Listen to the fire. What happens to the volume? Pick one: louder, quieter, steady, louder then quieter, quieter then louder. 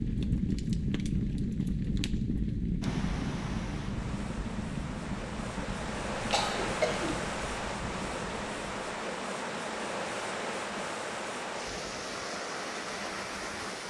quieter.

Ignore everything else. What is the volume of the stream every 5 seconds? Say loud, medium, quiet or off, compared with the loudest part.
medium, loud, loud.